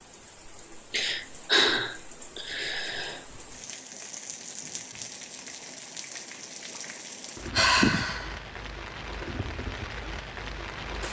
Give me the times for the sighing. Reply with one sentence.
You can hear the sighing from 0.9 to 3.2 s and from 7.5 to 8.3 s.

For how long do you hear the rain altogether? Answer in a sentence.
The rain can be heard for 11 seconds in total.